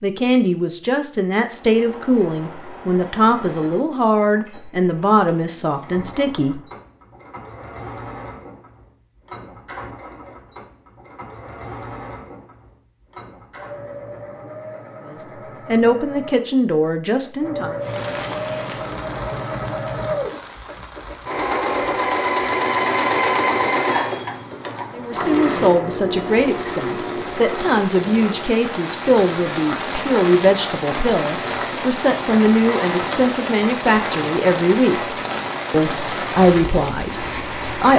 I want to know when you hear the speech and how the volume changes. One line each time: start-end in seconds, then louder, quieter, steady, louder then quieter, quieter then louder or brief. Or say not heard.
0.0-6.6 steady
15.1-17.8 brief
24.9-37.9 steady.